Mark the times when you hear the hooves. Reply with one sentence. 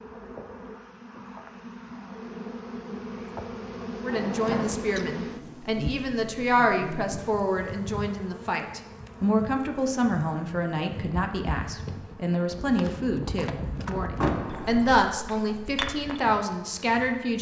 You can hear the hooves from 10.9 to 16.2 s.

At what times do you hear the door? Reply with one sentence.
You can hear the door from 4.0 to 5.0 s and from 14.2 to 14.8 s.